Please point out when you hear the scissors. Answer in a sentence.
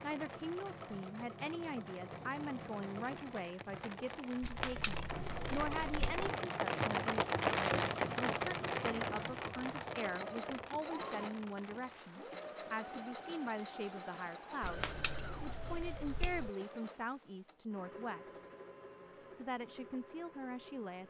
You can hear the scissors from 4.4 to 6.3 s and from 14.6 to 16.5 s.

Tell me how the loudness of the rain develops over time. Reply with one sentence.
The volume of the rain goes up, then down.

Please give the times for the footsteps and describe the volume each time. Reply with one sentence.
The footsteps can't be heard in this clip.